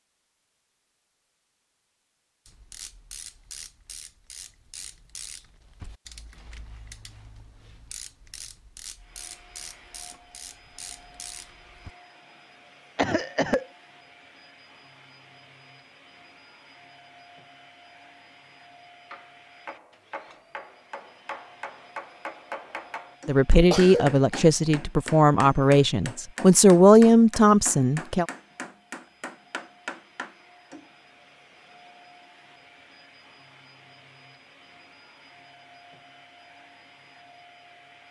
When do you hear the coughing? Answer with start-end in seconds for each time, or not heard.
12.9-13.7, 23.6-24.5.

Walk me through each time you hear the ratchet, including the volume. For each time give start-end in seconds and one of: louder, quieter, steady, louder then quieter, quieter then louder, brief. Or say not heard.
2.5-11.9 steady.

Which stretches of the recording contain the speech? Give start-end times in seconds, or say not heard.
23.2-28.2.